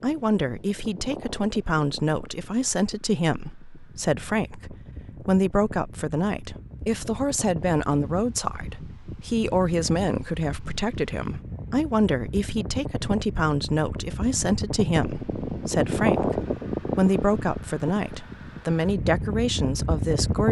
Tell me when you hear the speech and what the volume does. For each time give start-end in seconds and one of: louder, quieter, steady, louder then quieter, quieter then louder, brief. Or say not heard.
0.0-20.4 steady.